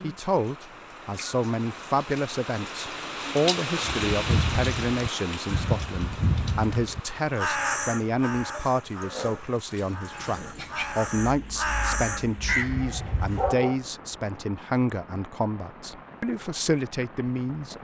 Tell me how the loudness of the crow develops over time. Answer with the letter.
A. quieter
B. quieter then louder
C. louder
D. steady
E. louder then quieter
B.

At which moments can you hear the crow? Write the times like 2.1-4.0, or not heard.
3.8-13.5.